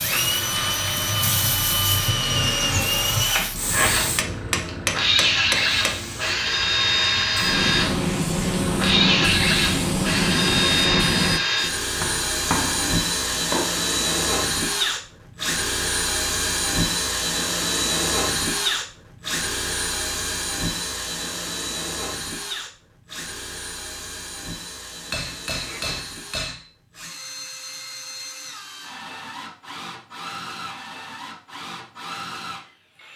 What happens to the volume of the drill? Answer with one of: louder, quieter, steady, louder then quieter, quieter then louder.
quieter.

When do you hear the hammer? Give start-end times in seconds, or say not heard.
4.2-6.0, 12.0-13.7, 25.1-26.6.